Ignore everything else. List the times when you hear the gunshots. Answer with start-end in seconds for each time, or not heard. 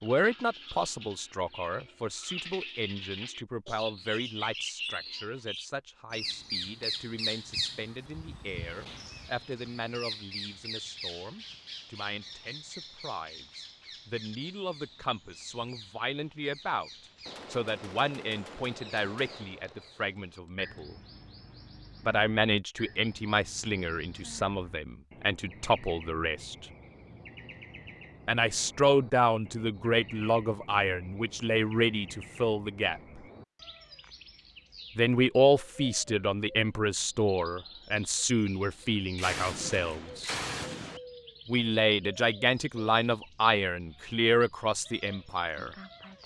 17.2-20.6, 39.1-41.0.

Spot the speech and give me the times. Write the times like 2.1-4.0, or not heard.
0.0-20.9, 22.1-26.6, 28.2-33.2, 35.0-40.4, 41.5-45.7.